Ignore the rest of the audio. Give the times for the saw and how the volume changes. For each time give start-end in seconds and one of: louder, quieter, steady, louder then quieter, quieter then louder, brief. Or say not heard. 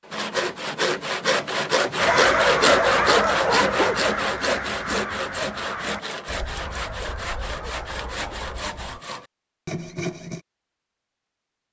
0.1-10.4 quieter.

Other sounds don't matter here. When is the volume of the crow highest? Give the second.
2 s.